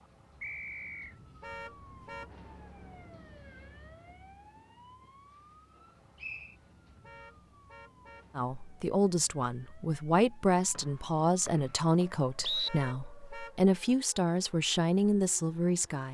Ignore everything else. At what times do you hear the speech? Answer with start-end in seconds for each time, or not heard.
8.3-16.0.